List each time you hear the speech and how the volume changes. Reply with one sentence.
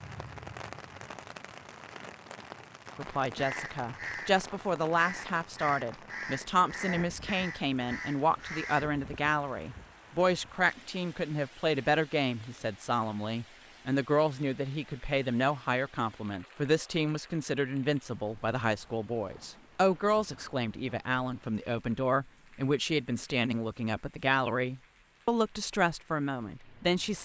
The speech can be heard from 3.0 to 27.1 s, at a steady volume.